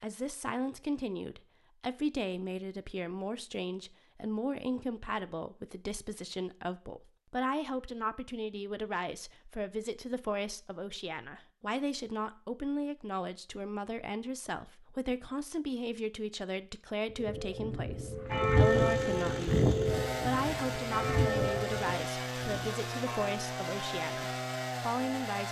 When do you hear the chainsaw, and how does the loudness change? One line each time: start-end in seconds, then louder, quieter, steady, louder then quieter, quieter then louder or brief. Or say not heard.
18.2-25.4 steady.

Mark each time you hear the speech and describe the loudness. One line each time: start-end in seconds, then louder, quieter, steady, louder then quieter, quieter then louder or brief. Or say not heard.
0.0-25.4 steady.